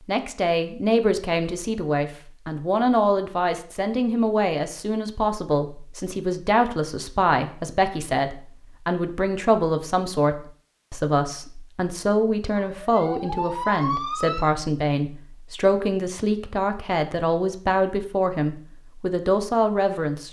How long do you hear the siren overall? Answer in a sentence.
You can hear the siren for 2 seconds altogether.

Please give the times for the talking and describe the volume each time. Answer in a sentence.
You can hear the talking from 0.1 to 20.2 s, at a steady volume.